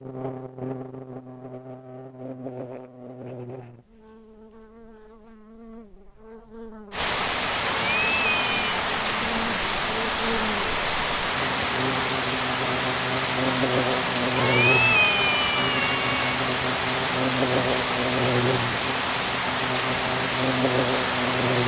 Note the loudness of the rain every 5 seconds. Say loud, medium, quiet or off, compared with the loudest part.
off, loud, loud, loud, loud.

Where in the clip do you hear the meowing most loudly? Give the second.
15 s.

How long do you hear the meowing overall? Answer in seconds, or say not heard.
3 s.